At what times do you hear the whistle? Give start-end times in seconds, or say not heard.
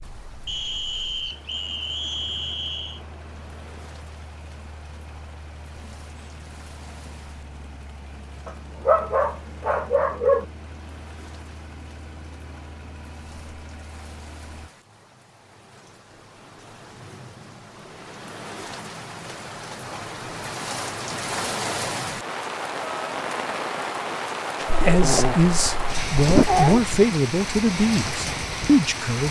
0.5-3.0.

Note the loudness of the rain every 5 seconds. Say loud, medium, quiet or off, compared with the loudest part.
quiet, quiet, quiet, medium, loud, loud.